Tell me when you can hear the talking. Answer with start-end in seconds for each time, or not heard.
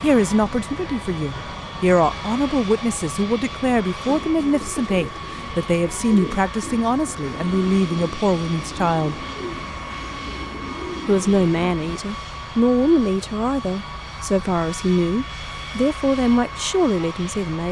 0.0-9.2, 11.1-17.6.